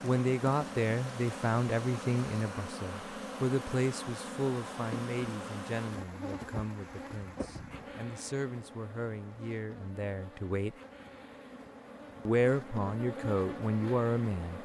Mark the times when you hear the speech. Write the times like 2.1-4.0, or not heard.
0.0-10.8, 12.2-14.6.